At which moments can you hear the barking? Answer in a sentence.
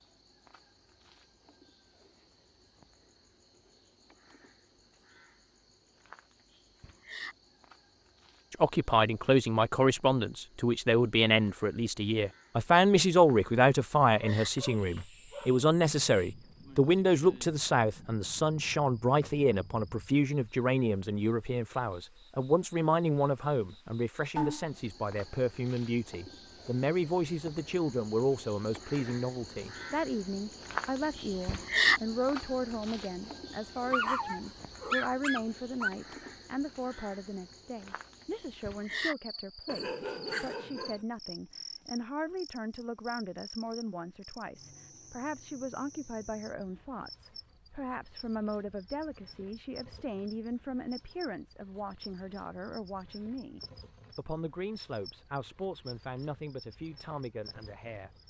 You can hear the barking from 14.2 to 15.7 s, from 33.9 to 35.9 s and from 39.6 to 41.0 s.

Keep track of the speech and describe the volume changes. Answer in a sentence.
The volume of the speech goes down.